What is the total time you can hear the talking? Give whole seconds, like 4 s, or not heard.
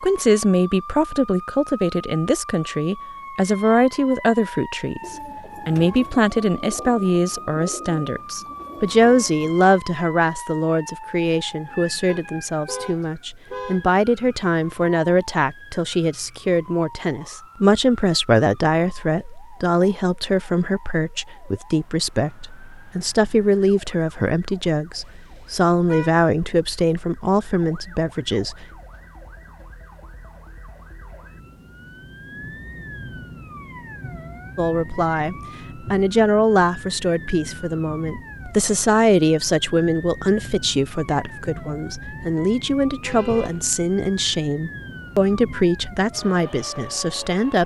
42 s.